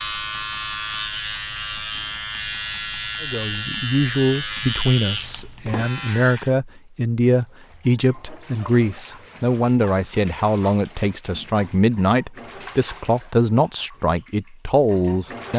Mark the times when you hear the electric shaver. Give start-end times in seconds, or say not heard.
0.0-6.5.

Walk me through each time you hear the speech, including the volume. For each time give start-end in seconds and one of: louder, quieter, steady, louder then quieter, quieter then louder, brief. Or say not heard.
3.2-15.5 steady.